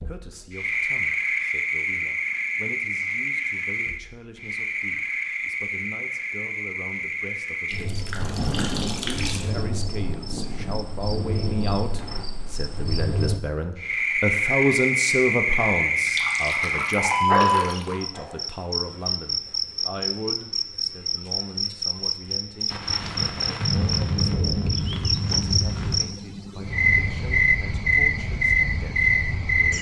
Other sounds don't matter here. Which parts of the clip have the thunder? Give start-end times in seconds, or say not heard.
8.2-12.2, 22.7-26.1.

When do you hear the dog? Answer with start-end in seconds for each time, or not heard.
16.6-18.4.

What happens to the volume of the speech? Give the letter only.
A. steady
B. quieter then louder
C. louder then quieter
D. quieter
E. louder
C.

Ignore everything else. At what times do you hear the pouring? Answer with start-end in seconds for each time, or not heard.
7.7-9.5, 15.9-18.0.